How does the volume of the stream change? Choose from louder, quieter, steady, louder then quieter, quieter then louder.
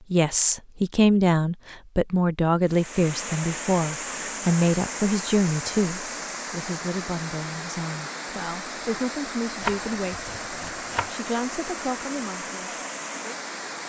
steady.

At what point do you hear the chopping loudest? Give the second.
10 s.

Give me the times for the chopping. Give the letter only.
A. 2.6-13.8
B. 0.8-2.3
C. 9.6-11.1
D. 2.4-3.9
C.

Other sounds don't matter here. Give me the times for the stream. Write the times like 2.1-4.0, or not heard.
2.6-13.8.